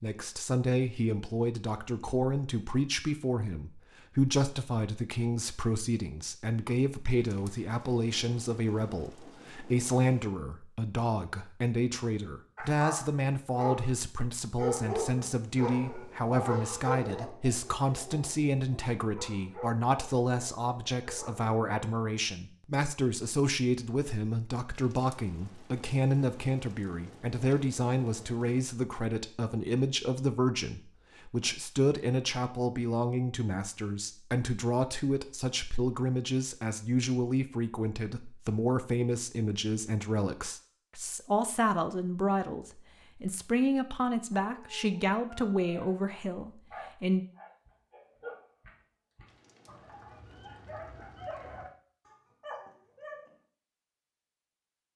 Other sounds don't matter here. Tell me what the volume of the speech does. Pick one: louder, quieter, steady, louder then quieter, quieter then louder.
steady.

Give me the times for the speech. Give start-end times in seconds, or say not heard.
0.0-47.2.